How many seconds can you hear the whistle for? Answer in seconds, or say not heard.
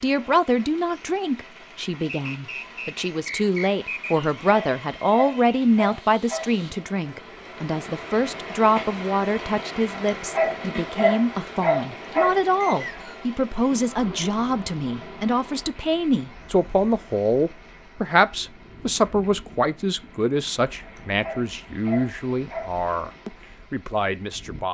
3 s.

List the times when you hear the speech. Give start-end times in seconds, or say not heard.
0.0-24.6.